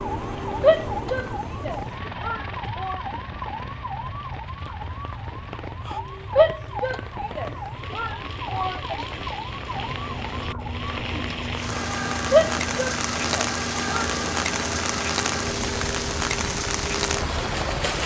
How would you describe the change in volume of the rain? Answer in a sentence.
The loudness of the rain goes up.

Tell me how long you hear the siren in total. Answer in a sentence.
The siren can be heard for 18 seconds in total.